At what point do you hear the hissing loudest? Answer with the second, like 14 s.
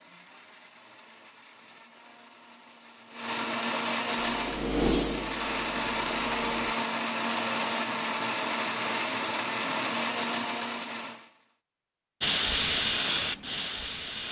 13 s.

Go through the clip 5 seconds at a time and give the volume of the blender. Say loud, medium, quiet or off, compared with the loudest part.
medium, loud, loud.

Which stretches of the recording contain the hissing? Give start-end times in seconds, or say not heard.
4.2-6.5, 12.2-14.2.